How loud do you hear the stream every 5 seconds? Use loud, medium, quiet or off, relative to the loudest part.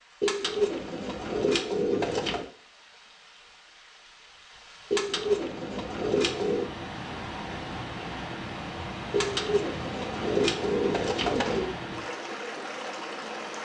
quiet, loud, loud.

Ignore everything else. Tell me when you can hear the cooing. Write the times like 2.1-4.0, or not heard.
0.2-2.5, 4.9-6.7, 9.1-11.7.